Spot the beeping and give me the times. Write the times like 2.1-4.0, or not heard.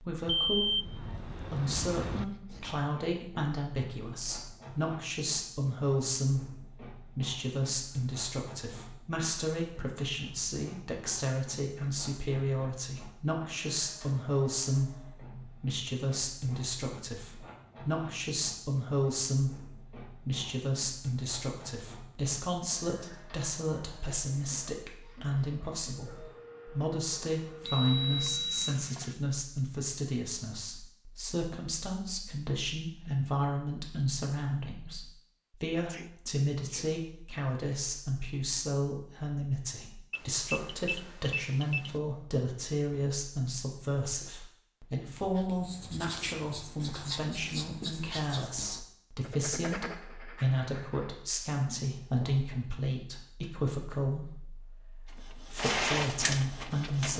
0.2-2.2, 27.6-29.1, 40.1-42.0.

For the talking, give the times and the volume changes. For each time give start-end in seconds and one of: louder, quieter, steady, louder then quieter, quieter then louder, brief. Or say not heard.
0.0-57.1 steady.